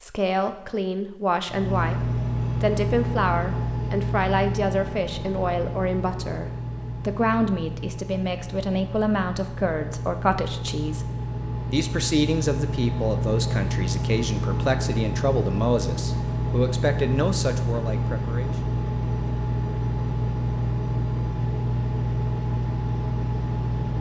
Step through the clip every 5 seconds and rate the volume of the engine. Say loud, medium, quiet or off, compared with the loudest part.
loud, medium, loud, loud, loud.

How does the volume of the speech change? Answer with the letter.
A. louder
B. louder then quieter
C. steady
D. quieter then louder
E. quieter
C.